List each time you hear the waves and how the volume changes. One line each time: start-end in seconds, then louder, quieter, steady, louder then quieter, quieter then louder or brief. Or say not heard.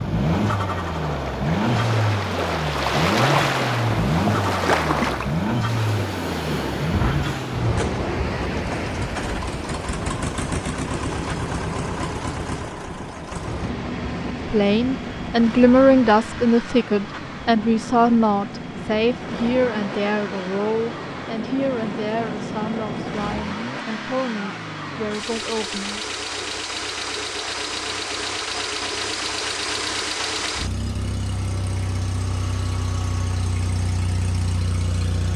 0.0-23.4 quieter.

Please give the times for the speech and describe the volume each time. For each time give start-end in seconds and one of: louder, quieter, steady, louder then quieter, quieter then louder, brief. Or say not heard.
14.4-26.1 quieter.